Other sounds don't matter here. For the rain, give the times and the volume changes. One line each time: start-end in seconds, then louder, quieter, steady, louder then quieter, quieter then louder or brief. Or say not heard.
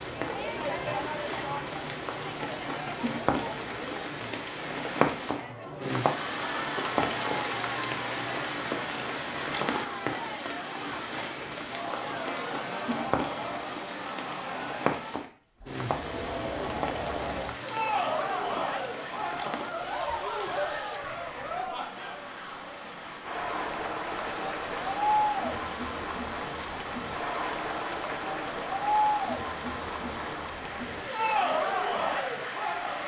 0.0-33.0 quieter.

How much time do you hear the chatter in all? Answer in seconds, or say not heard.
33 s.